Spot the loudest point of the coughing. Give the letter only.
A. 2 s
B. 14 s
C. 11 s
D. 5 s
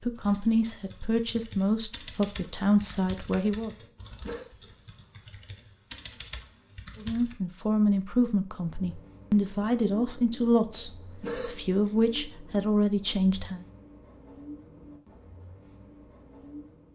C.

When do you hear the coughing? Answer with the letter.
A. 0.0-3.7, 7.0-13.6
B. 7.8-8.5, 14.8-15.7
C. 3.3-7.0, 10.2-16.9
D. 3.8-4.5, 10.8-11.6
D.